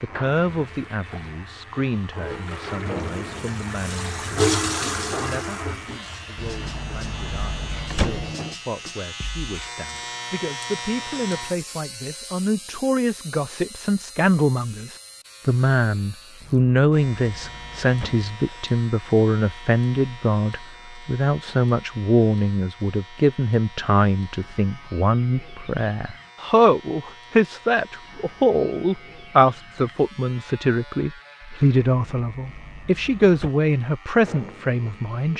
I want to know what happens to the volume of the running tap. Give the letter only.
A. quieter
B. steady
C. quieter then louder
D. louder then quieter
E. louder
D.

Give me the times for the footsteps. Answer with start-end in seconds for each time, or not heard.
not heard.